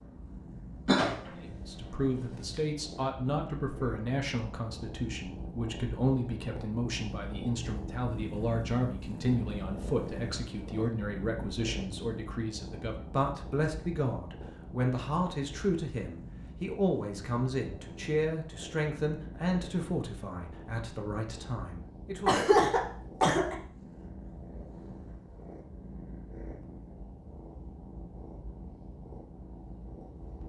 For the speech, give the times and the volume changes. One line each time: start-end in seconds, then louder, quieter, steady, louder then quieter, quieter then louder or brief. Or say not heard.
1.3-22.4 steady.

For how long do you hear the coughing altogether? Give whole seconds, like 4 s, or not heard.
2 s.